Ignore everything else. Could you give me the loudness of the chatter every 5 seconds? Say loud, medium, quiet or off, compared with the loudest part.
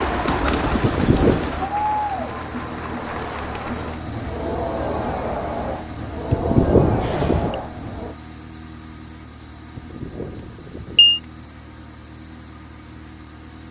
loud, loud, off.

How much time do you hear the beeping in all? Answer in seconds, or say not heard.
3 s.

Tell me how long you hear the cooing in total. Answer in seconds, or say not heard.
2 s.